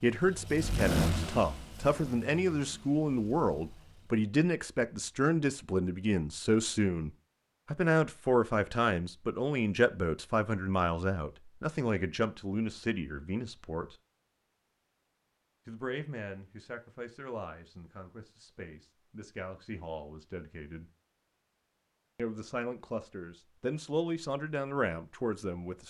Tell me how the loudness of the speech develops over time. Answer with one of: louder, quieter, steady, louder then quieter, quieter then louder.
quieter then louder.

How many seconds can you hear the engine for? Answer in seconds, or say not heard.
4 s.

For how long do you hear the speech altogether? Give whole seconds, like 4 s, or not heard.
22 s.